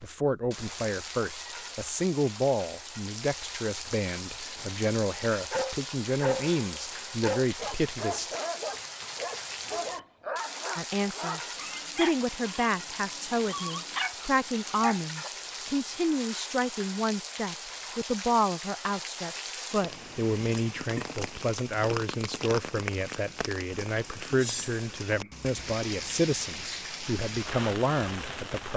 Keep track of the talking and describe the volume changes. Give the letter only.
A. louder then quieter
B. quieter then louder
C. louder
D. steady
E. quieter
D.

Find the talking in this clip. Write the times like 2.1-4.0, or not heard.
0.0-8.3, 10.8-28.7.